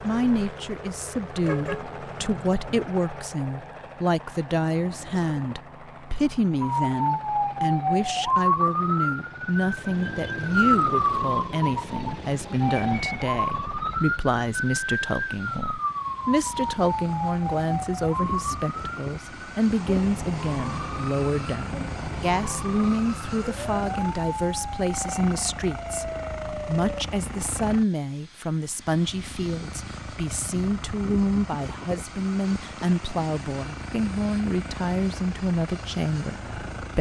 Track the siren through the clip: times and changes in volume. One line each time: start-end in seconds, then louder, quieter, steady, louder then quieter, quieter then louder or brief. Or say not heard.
6.6-27.1 quieter.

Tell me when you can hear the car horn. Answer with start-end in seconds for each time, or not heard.
1.4-2.9.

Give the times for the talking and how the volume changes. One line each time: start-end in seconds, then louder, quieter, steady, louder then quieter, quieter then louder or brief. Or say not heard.
0.0-36.9 steady.